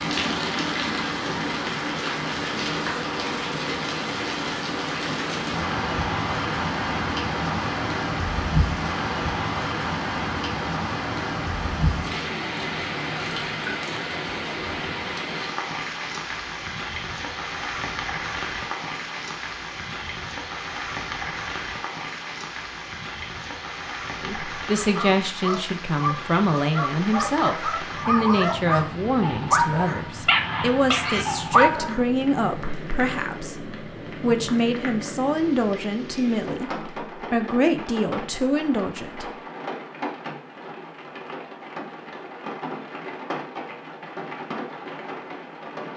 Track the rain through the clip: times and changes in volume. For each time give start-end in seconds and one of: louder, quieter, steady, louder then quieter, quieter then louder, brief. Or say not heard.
0.0-45.9 quieter.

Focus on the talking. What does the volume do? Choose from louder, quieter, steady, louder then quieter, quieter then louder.
steady.